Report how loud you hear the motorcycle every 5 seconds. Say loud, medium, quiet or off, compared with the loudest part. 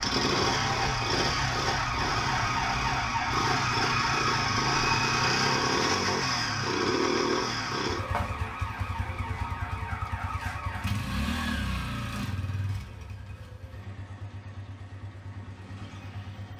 loud, loud, medium, quiet.